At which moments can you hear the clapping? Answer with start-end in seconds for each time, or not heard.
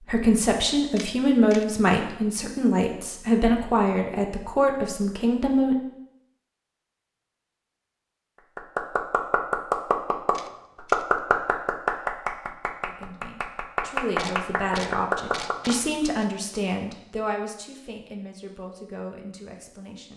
8.6-15.8.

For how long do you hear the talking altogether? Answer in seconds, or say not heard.
13 s.